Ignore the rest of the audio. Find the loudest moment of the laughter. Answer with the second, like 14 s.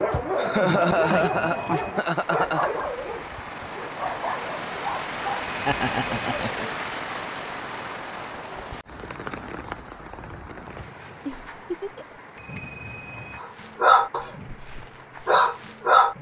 1 s.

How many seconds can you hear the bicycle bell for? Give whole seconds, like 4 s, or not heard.
3 s.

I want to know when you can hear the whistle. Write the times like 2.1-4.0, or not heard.
not heard.